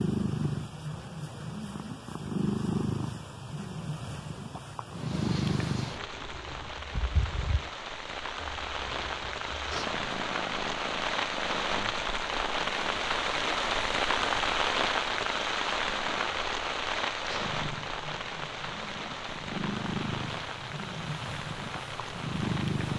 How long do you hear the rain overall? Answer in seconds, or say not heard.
18 s.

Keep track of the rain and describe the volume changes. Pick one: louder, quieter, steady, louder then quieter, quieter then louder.
louder then quieter.